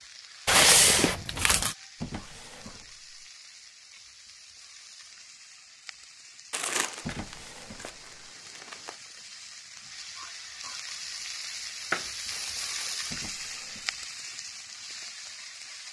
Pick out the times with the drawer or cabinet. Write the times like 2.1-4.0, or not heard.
2.0-3.1, 7.0-8.1, 13.1-13.9.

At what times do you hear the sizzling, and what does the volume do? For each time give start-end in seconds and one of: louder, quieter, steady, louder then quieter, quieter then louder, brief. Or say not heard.
0.0-15.8 louder.